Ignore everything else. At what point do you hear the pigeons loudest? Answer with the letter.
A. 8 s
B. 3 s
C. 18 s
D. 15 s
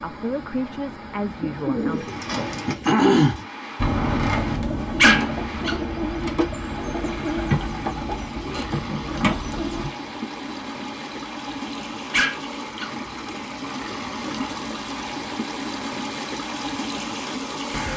B.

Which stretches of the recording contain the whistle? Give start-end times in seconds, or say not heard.
not heard.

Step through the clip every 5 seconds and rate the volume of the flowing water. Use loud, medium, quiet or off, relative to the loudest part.
medium, medium, loud, loud.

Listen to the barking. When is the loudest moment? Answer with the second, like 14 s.
5 s.